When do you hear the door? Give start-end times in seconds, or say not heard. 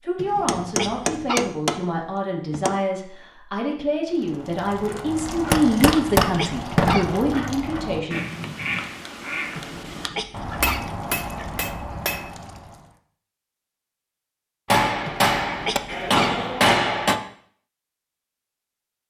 not heard.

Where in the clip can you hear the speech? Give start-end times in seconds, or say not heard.
0.0-8.2.